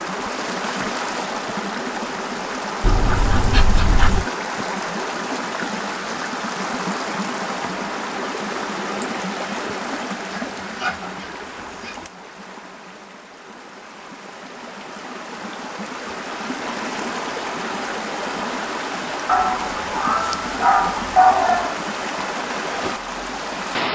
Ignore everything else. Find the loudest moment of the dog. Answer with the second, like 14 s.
21 s.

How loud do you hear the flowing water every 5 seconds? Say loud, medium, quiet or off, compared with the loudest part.
loud, loud, medium, loud, loud.